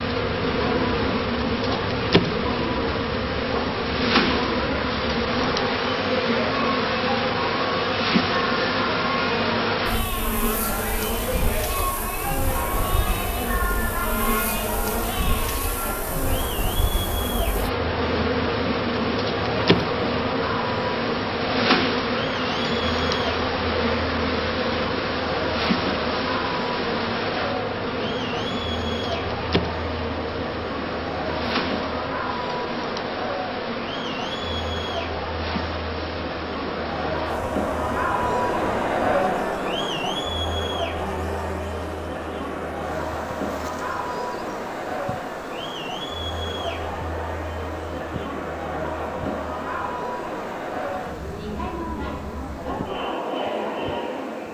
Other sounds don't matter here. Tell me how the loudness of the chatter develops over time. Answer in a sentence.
The volume of the chatter stays about the same.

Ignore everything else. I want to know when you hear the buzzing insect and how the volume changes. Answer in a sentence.
You can hear the buzzing insect from 0.0 to 54.4 s, getting quieter.